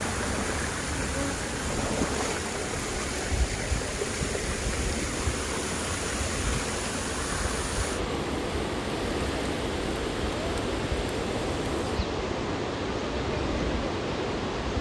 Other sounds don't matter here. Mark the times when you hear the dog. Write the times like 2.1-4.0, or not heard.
not heard.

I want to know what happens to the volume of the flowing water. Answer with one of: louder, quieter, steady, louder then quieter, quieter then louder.
steady.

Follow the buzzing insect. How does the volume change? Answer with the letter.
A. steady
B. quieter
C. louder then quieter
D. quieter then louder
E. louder
A.